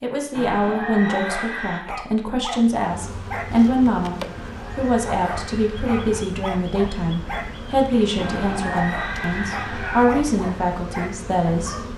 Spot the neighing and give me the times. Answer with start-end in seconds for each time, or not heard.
0.3-1.8, 4.2-6.2, 8.2-10.1.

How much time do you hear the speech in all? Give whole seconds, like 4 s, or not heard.
12 s.